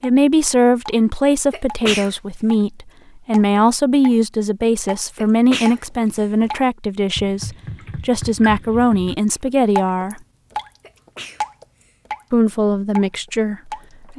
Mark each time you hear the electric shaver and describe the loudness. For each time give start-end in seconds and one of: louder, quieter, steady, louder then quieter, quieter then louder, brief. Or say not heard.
not heard.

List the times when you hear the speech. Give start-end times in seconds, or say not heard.
0.0-10.2, 12.3-14.1.